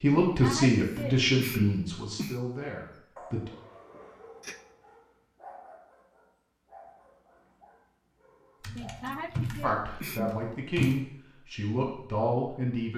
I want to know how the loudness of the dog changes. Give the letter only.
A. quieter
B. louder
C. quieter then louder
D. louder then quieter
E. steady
A.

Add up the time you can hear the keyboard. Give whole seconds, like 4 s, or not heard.
2 s.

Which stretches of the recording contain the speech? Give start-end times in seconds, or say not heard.
0.0-3.5, 9.6-12.9.